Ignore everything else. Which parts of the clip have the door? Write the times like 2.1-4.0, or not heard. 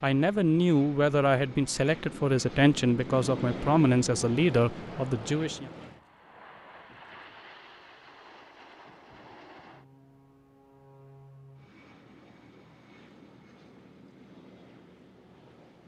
not heard.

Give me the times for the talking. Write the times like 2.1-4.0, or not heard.
0.0-5.7.